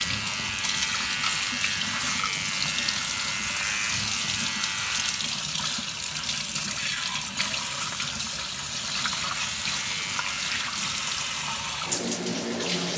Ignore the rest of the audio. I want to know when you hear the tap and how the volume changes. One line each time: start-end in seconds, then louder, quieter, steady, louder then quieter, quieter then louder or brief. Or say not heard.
0.0-12.9 steady.